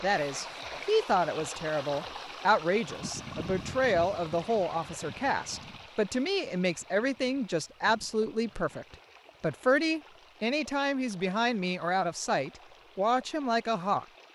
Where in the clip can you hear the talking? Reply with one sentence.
You can hear the talking from 0.0 to 14.1 s.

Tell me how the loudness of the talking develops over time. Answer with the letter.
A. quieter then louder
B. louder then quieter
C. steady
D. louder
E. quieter
C.